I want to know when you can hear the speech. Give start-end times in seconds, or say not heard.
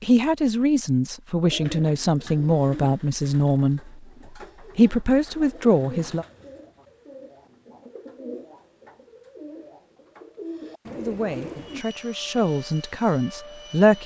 0.0-4.0, 4.8-6.2, 10.9-14.0.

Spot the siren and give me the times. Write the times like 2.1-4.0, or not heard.
not heard.